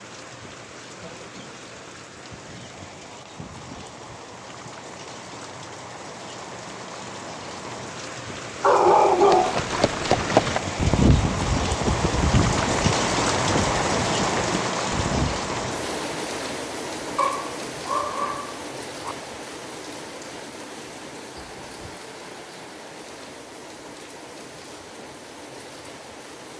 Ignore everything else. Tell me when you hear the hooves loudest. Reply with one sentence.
The volume of the hooves peaks at 10 seconds.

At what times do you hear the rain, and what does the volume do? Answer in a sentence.
The rain can be heard from 0.0 to 26.5 s, getting louder then quieter.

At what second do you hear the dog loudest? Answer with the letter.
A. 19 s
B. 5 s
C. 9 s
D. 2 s
C.